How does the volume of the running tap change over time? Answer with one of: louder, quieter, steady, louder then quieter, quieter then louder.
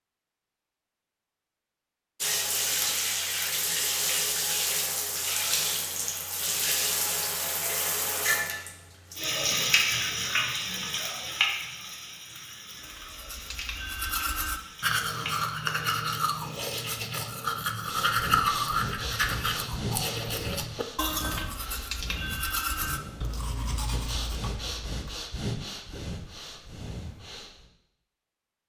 quieter.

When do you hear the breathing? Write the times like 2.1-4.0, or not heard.
17.9-27.7.